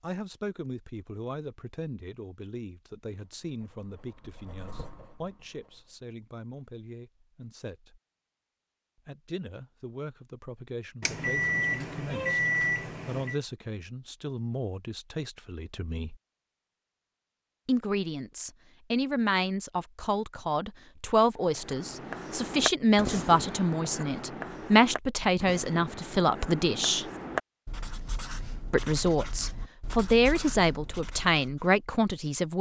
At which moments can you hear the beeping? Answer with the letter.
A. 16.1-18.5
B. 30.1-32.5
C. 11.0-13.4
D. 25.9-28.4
C.